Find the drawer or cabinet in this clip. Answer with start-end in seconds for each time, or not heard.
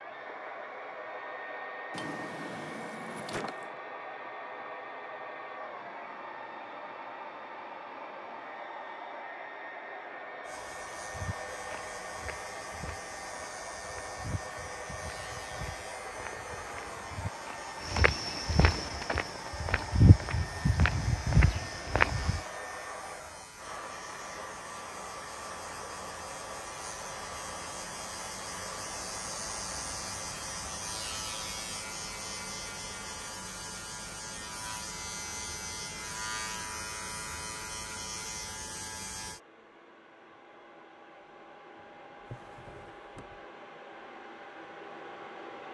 1.9-3.8, 42.2-43.5.